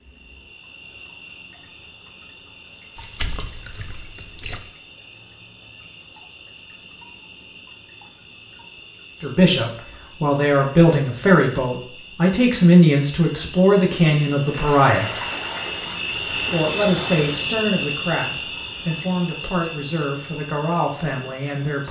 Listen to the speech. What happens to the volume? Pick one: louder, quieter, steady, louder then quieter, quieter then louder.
quieter.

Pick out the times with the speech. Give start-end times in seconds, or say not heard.
9.2-15.1, 16.3-21.8.